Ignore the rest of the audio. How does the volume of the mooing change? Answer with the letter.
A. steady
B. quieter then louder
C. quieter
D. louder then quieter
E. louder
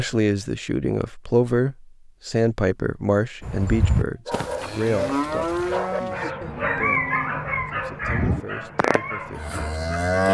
B.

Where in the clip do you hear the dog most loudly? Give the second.
7 s.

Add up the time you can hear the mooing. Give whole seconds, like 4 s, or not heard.
7 s.